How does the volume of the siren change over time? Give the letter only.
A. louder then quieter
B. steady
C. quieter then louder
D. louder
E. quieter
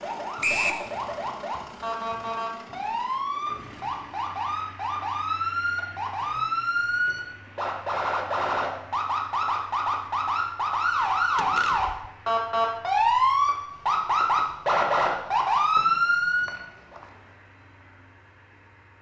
D.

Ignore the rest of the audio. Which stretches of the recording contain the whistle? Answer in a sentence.
You can hear the whistle from 0.4 to 0.8 s and from 15.8 to 17.1 s.